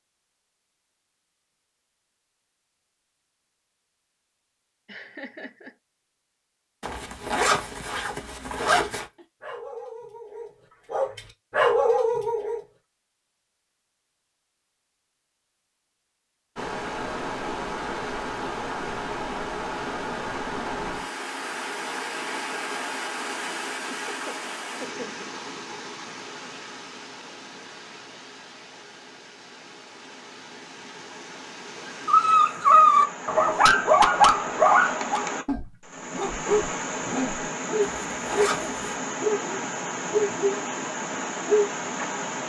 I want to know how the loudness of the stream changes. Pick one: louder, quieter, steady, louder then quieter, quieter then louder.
quieter then louder.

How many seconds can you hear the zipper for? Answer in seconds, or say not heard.
3 s.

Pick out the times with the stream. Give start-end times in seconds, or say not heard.
16.6-42.4.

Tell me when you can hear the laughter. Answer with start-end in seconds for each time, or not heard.
4.8-5.8, 24.1-25.3.